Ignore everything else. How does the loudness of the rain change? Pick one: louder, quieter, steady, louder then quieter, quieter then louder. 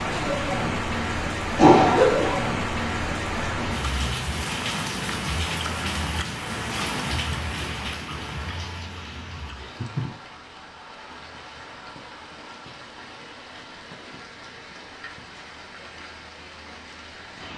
quieter.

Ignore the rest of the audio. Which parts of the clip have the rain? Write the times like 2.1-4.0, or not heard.
0.0-17.5.